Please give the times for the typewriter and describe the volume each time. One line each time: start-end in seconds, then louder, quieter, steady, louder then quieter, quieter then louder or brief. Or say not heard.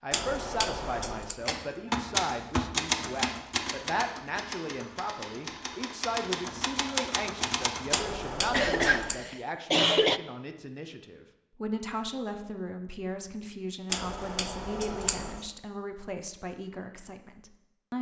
1.4-8.1 quieter then louder.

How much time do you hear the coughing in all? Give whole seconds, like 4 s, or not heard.
2 s.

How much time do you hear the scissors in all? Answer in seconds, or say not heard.
4 s.